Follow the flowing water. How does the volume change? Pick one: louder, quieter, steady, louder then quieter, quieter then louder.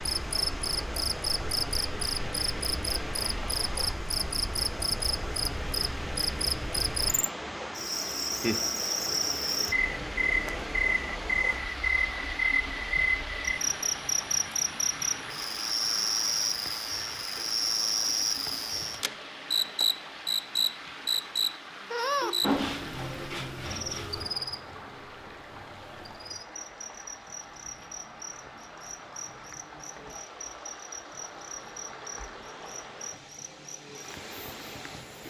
quieter.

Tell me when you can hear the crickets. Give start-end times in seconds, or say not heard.
0.0-35.2.